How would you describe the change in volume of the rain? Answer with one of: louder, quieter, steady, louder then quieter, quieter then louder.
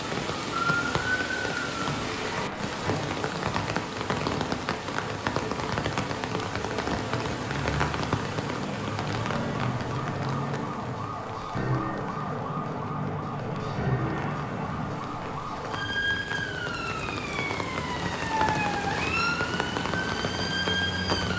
quieter then louder.